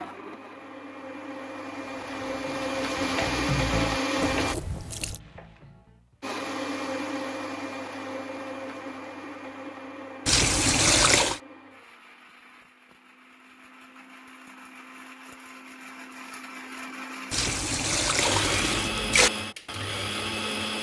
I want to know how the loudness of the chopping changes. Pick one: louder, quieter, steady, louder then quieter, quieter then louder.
louder then quieter.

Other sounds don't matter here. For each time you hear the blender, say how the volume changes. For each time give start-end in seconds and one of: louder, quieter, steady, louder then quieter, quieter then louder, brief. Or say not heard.
0.0-4.5 louder
6.2-20.7 quieter then louder.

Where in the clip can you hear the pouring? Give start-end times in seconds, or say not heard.
4.2-5.2, 10.2-11.4, 17.3-19.3.